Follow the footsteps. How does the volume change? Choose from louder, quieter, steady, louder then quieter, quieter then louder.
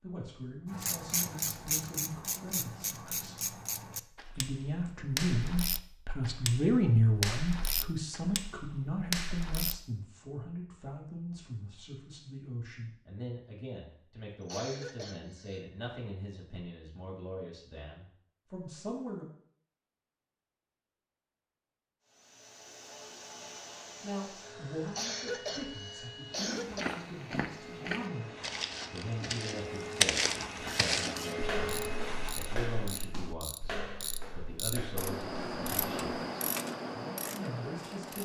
louder then quieter.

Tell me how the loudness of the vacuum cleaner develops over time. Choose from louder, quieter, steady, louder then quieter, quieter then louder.
louder.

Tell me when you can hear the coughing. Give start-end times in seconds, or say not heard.
14.4-15.6, 24.9-26.9.